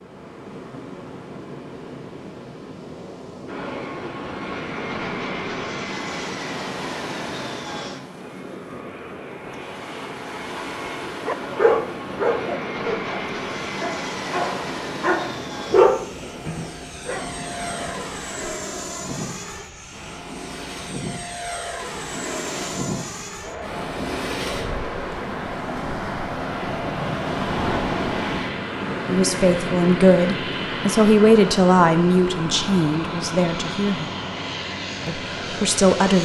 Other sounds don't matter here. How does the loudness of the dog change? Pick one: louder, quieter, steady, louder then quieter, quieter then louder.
quieter then louder.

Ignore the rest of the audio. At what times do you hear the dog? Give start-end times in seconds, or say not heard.
11.2-17.2.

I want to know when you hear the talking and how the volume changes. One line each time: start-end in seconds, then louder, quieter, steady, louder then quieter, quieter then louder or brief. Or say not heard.
29.1-34.1 quieter
35.0-36.2 brief.